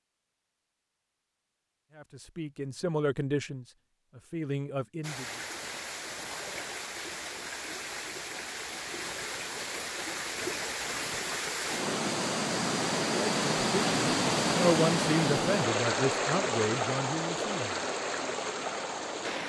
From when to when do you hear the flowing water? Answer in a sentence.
The flowing water can be heard from 5.0 to 19.4 s.